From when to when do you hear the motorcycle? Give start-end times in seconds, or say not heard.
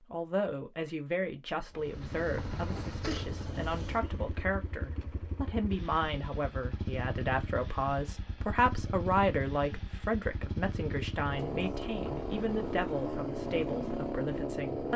1.7-14.9.